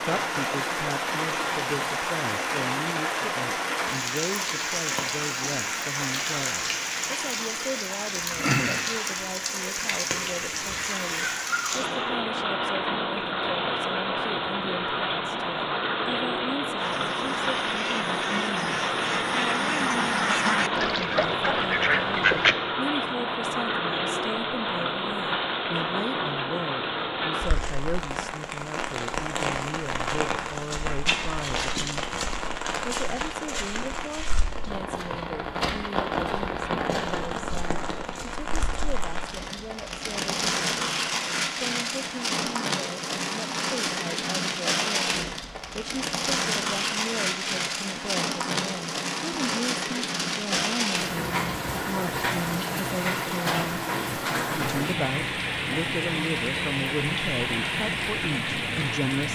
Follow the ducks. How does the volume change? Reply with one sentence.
The volume of the ducks goes up.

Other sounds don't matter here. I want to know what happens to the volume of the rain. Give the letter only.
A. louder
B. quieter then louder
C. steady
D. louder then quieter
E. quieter
C.